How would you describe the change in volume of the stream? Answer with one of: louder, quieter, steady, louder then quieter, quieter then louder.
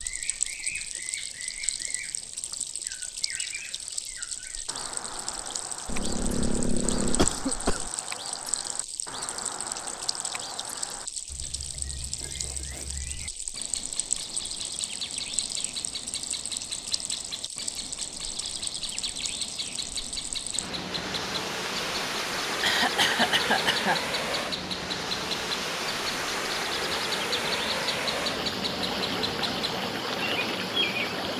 louder.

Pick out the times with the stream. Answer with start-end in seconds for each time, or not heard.
0.0-31.3.